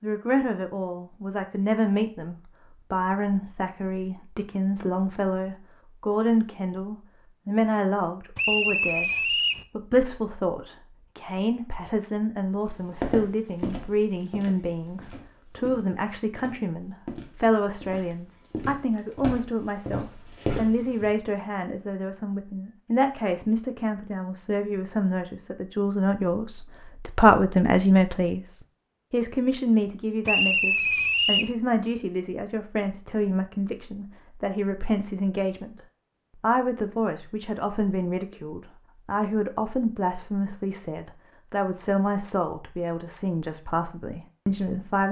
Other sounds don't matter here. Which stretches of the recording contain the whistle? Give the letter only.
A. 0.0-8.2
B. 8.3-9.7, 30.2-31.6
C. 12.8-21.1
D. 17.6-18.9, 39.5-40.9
B.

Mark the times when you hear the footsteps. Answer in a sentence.
The footsteps can be heard from 12.8 to 21.1 s.